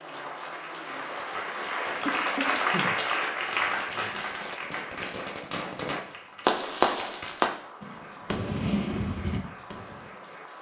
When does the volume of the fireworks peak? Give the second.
7 s.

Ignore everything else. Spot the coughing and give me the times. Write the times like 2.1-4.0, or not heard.
2.0-3.0.